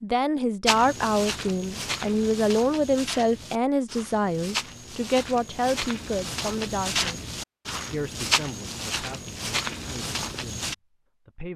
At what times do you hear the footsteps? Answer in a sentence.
The footsteps can be heard from 0.7 to 10.8 s.